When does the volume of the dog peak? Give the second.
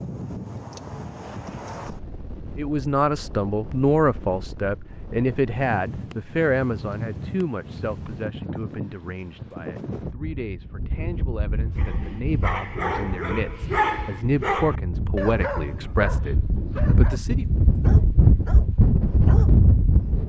14 s.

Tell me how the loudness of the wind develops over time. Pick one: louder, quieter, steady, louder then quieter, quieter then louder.
louder.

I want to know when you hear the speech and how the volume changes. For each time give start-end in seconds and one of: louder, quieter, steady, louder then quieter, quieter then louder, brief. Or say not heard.
2.5-17.4 quieter then louder.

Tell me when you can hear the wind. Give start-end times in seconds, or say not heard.
0.0-20.2.